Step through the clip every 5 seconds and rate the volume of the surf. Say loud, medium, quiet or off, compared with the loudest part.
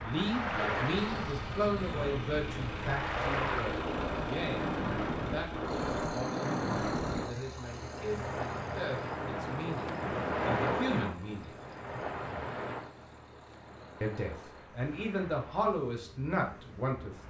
loud, loud, loud, quiet.